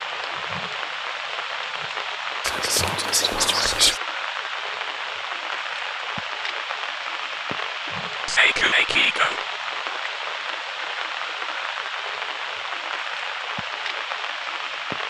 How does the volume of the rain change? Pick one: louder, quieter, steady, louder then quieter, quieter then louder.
steady.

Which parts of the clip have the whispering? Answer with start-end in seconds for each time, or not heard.
2.4-4.0, 8.2-9.4.